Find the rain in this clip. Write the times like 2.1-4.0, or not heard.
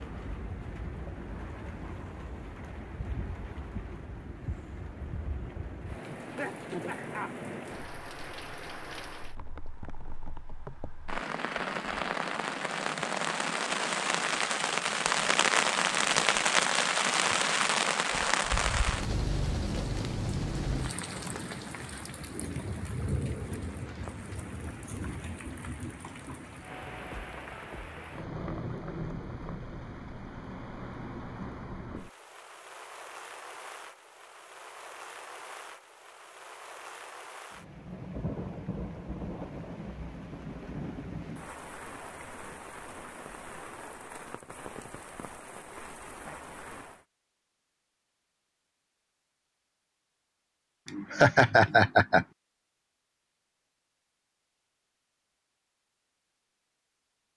0.0-47.0.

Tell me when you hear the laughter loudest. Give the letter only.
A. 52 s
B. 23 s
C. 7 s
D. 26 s
A.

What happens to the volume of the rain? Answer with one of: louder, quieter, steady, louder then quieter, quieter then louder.
louder then quieter.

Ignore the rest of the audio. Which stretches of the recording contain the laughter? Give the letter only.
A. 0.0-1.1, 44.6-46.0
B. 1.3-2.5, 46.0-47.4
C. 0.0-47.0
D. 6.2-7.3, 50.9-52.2
D.